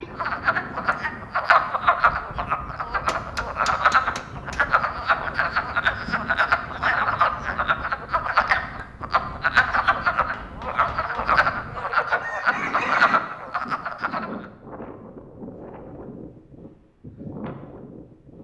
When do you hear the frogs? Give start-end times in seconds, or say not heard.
0.0-14.4.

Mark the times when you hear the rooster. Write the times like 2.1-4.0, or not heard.
12.2-13.2.